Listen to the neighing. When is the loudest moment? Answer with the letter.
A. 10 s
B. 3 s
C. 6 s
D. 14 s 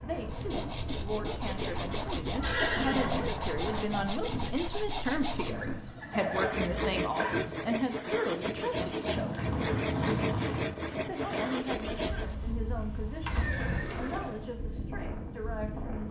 B.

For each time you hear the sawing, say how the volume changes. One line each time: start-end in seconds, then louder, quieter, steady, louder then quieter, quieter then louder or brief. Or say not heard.
0.2-12.3 steady.